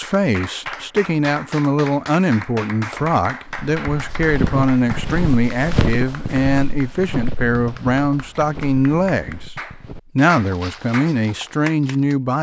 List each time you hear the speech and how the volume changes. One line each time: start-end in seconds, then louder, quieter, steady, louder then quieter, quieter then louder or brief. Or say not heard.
0.0-9.6 steady
10.2-12.3 brief.